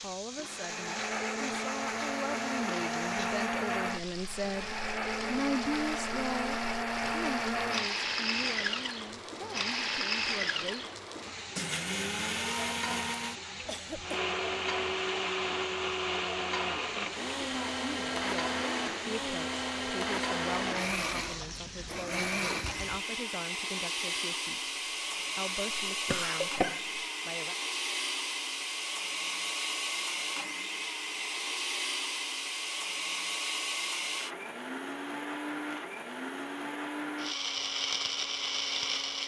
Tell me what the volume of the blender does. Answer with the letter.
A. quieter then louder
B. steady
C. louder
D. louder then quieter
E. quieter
B.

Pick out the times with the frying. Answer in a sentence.
The frying can be heard from 0.0 to 23.0 s.